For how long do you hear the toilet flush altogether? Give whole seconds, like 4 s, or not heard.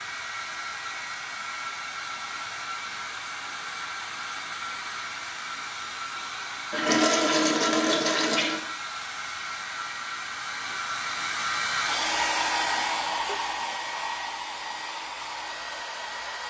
2 s.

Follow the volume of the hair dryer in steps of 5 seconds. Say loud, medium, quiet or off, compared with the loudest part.
medium, medium, loud, medium.